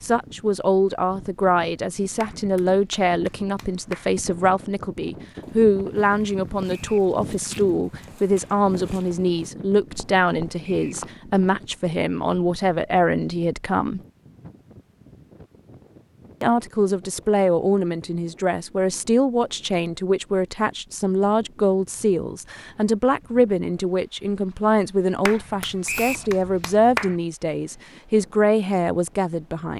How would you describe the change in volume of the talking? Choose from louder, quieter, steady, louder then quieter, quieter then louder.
steady.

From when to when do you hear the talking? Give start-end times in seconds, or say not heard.
0.0-14.0, 16.4-29.7.